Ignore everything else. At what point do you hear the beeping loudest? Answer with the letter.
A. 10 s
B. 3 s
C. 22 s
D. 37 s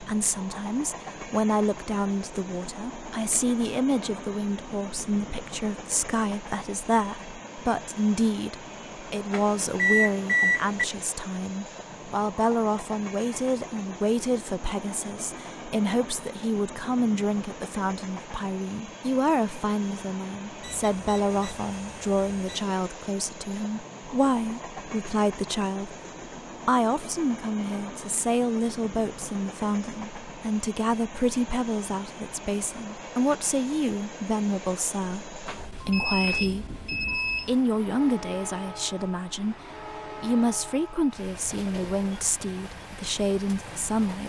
A.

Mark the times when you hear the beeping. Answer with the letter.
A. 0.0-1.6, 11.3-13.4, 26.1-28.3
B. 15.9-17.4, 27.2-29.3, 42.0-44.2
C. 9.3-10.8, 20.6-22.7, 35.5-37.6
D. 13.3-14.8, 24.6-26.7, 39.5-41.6
C.